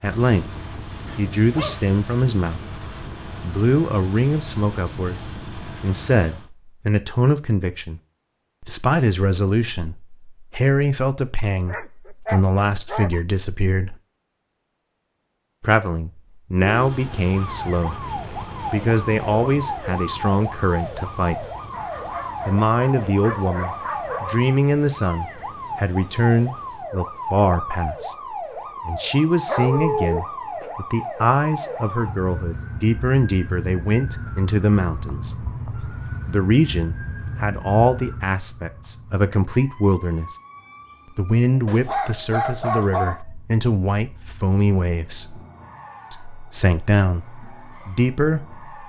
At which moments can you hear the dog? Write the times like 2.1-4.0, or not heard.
1.1-1.9, 11.7-13.2, 21.7-24.4, 29.4-30.2, 41.6-43.2.